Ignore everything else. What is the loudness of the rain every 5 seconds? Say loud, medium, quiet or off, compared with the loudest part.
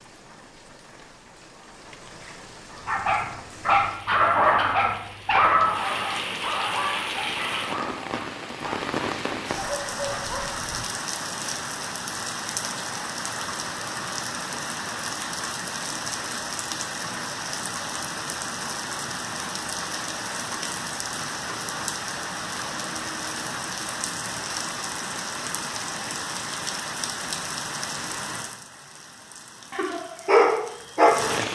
quiet, loud, loud, loud, loud, loud, loud.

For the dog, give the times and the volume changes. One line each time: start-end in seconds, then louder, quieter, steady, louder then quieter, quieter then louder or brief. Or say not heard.
2.9-10.8 quieter
29.7-31.4 brief.